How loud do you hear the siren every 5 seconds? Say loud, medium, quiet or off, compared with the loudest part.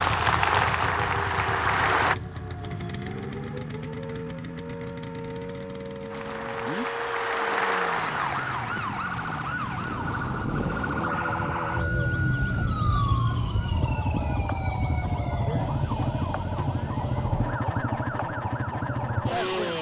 quiet, medium, loud, medium.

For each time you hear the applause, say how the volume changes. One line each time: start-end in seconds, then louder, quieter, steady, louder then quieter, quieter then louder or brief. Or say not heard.
0.0-2.1 brief
6.1-10.1 louder then quieter.